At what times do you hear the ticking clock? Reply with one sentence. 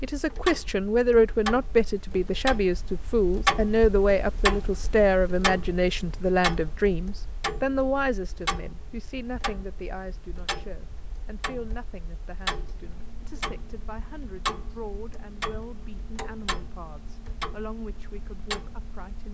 You can hear the ticking clock from 0.0 to 19.2 s.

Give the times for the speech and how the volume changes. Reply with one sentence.
You can hear the speech from 0.0 to 19.2 s, getting quieter.